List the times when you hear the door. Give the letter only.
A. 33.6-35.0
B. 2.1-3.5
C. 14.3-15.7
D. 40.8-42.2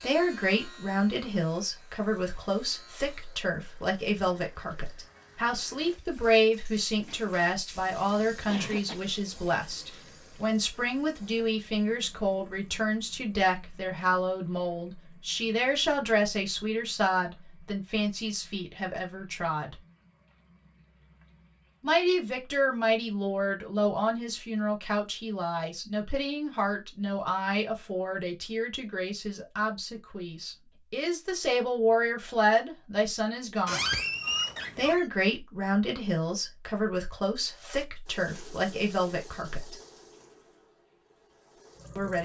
A.